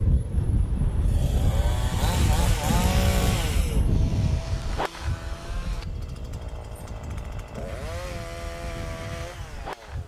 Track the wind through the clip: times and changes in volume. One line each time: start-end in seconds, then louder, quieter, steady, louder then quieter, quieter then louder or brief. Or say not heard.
0.0-10.0 quieter.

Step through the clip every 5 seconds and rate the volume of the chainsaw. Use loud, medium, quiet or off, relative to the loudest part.
loud, medium.